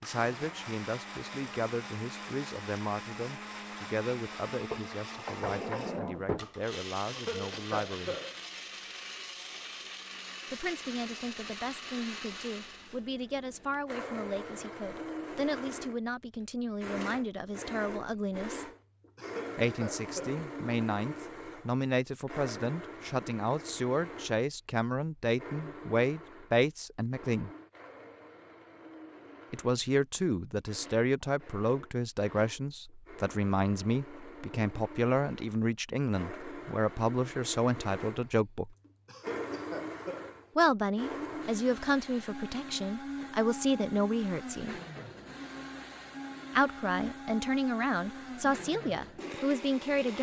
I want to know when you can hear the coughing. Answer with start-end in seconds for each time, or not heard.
7.0-8.3, 19.1-20.4, 39.0-40.4.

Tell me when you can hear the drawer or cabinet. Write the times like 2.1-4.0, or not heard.
4.7-6.5.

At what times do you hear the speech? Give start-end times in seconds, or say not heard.
0.0-8.2, 10.5-18.6, 19.6-27.5, 29.5-38.8, 40.5-44.8, 46.5-50.1.